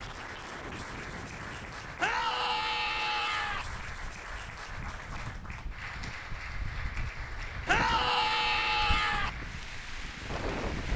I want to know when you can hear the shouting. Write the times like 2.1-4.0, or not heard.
1.9-3.6, 7.7-9.3.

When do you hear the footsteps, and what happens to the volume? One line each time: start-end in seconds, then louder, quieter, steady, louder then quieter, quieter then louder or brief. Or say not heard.
not heard.